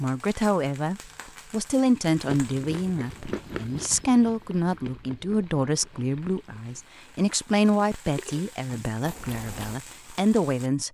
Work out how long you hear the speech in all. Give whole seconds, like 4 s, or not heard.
11 s.